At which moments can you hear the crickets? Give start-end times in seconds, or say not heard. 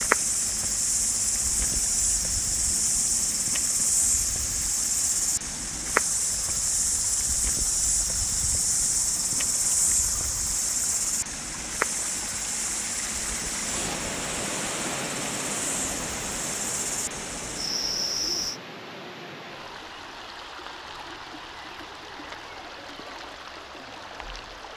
0.0-18.6.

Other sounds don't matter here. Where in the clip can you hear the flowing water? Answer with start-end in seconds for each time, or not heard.
0.0-24.7.